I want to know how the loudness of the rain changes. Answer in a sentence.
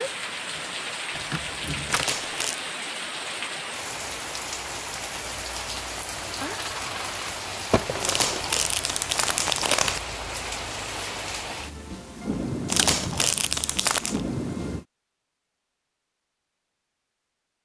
The loudness of the rain stays about the same.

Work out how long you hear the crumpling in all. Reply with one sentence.
The crumpling can be heard for 4 seconds in total.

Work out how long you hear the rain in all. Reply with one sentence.
The rain can be heard for 15 seconds in total.